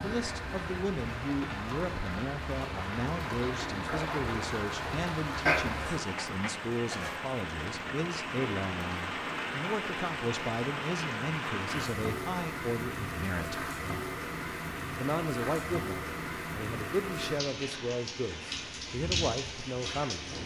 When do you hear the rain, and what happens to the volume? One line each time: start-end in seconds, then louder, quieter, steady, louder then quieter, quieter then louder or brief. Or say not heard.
0.0-20.4 steady.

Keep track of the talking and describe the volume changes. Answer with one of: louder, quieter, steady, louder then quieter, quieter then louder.
steady.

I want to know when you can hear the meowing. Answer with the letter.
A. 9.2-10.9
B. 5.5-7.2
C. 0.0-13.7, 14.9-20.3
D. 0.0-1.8
B.